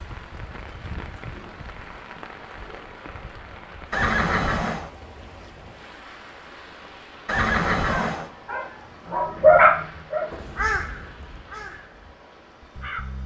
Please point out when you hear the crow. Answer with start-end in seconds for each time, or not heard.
10.3-13.2.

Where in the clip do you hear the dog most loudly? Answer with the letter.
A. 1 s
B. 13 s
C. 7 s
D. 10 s
D.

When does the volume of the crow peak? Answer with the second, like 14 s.
11 s.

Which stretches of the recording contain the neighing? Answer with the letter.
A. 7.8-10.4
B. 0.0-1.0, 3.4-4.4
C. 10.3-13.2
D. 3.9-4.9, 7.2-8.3
D.